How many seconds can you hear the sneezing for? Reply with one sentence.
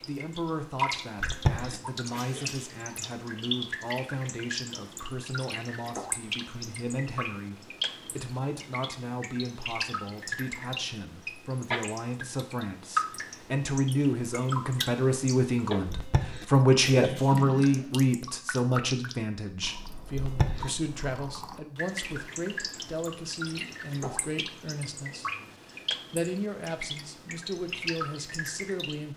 The sneezing can be heard for 3 seconds in total.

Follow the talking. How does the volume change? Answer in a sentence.
The loudness of the talking goes up, then down.